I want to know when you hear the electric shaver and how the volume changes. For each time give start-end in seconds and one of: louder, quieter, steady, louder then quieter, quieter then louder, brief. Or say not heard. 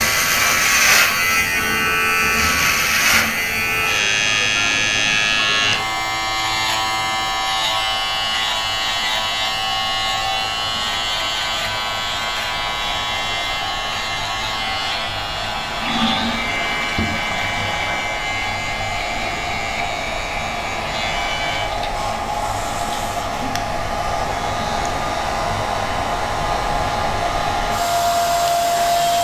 0.0-29.1 quieter.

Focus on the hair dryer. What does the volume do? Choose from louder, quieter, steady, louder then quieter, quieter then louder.
louder.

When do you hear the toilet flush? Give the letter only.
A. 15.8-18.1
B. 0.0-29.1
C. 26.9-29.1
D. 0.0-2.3
A.